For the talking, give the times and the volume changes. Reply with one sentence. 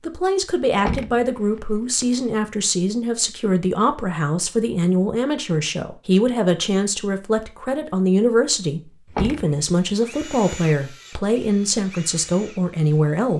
The talking can be heard from 0.0 to 13.3 s, at a steady volume.